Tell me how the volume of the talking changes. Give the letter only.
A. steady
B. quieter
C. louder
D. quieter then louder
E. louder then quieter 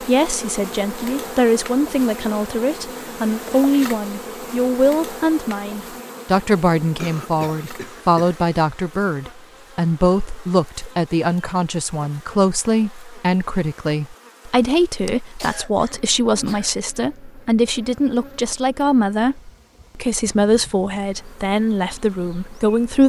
A.